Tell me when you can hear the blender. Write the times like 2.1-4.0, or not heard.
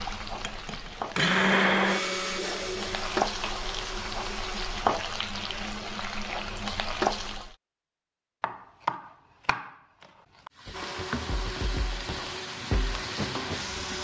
0.0-4.8, 10.7-13.9.